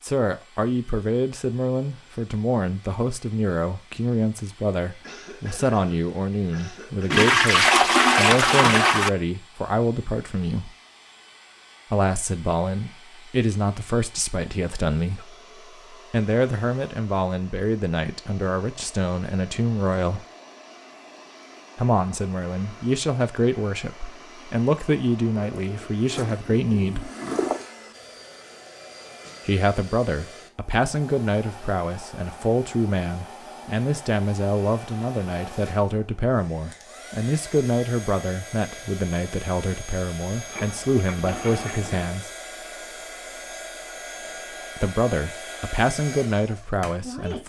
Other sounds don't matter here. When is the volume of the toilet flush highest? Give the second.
8 s.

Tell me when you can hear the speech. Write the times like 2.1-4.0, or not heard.
0.0-10.7, 11.9-20.2, 21.8-27.1, 29.4-42.3, 44.8-47.4.